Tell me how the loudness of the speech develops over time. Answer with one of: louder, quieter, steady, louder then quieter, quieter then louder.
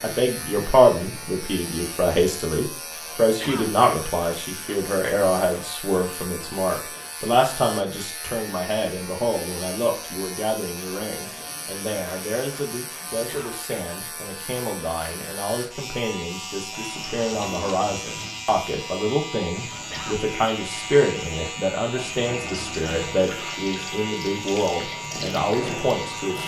quieter then louder.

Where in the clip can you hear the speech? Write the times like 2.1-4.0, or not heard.
0.0-26.4.